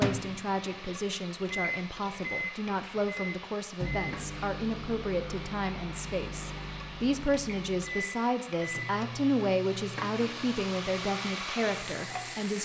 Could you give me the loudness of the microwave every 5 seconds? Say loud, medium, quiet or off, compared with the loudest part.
loud, medium, quiet.